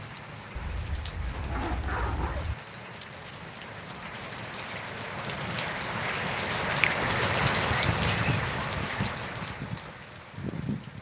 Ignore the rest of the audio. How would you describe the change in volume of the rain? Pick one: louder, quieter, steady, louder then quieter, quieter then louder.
louder then quieter.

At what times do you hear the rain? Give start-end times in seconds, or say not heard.
0.0-10.9.